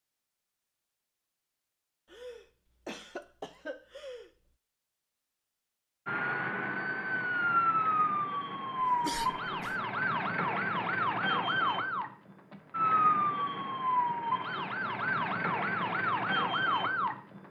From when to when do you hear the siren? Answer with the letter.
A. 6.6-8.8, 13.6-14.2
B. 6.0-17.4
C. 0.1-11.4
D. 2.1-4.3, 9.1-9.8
B.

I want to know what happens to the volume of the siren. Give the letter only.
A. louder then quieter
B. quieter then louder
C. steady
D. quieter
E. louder
C.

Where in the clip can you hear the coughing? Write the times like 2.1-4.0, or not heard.
2.1-4.3, 9.1-9.8.